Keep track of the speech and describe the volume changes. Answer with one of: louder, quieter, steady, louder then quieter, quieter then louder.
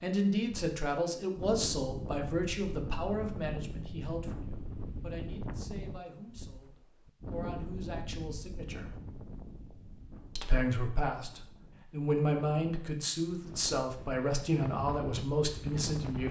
quieter then louder.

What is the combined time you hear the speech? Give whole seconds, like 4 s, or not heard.
15 s.